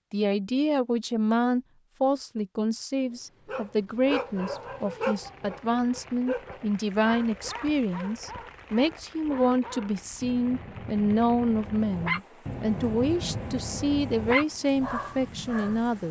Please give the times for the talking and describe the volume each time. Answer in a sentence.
The talking can be heard from 0.1 to 16.0 s, at a steady volume.